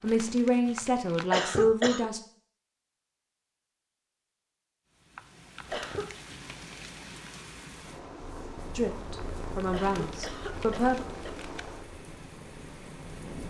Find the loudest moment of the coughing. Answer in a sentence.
The volume of the coughing peaks at 1 second.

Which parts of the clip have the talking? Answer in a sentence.
The talking can be heard from 0.0 to 2.2 s and from 8.8 to 10.9 s.